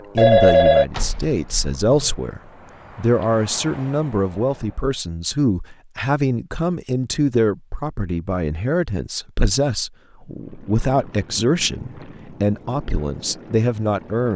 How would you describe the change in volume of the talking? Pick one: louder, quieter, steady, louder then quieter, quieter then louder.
steady.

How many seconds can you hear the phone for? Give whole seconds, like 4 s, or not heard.
2 s.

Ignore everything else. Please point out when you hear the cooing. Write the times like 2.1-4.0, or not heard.
not heard.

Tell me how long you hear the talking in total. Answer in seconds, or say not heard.
14 s.